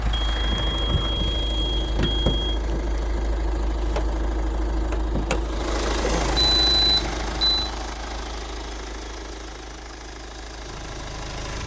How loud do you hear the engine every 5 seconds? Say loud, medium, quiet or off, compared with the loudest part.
loud, loud, medium.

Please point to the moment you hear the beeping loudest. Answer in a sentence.
The volume of the beeping peaks at 7 seconds.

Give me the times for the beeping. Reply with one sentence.
You can hear the beeping from 0.1 to 2.6 s and from 6.3 to 7.7 s.